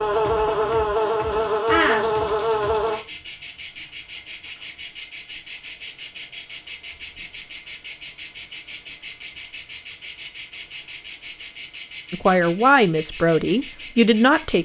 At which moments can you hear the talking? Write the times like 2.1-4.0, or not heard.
12.1-14.5.